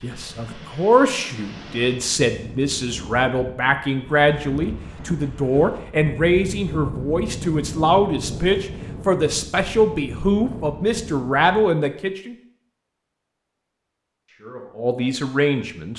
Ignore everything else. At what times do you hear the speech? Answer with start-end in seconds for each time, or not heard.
0.0-12.3, 14.2-15.9.